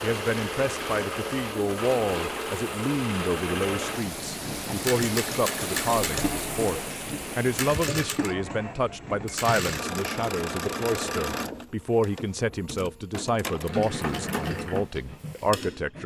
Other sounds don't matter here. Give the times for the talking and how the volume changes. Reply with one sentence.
You can hear the talking from 0.0 to 16.0 s, at a steady volume.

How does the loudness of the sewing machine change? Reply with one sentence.
The volume of the sewing machine stays about the same.